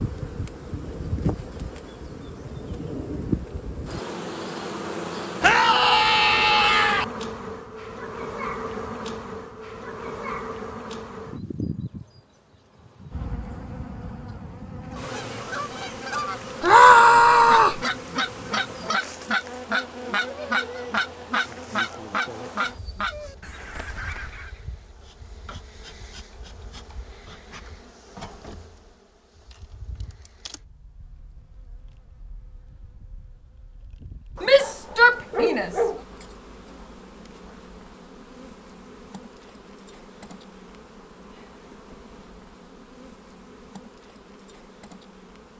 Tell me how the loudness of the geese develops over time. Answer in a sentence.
The volume of the geese goes up, then down.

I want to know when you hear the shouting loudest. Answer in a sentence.
The volume of the shouting peaks at 17 seconds.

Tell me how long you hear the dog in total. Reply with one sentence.
The dog can be heard for 2 seconds in total.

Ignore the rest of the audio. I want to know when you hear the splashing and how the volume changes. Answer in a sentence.
You can't hear the splashing here.